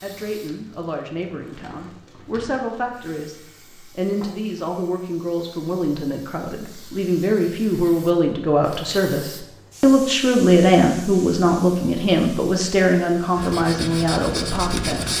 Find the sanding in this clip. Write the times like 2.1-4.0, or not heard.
13.3-15.1.